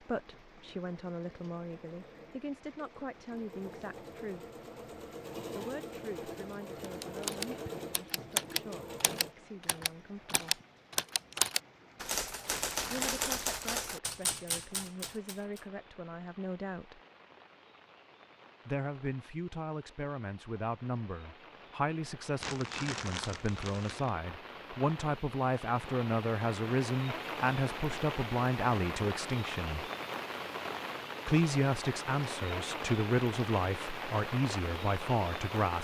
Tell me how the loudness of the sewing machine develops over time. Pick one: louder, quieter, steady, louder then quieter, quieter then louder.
louder.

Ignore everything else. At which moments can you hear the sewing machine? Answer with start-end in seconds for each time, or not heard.
0.0-9.3.